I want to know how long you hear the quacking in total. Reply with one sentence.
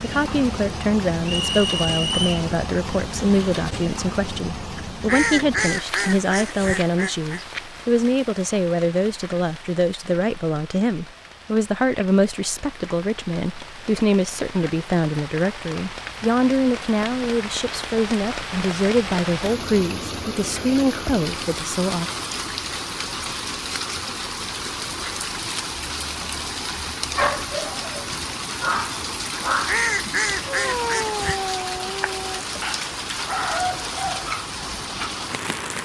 You can hear the quacking for 5 seconds altogether.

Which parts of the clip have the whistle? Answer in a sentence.
The whistle can be heard from 1.2 to 2.5 s.